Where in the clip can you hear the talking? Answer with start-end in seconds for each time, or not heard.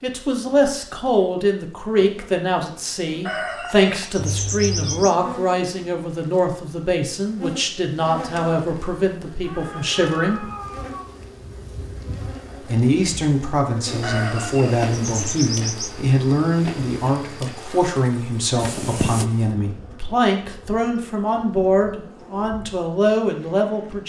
0.0-10.5, 12.6-24.0.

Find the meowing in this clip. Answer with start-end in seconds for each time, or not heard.
4.2-5.0, 9.4-11.1, 18.6-19.2.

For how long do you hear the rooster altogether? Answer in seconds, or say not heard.
4 s.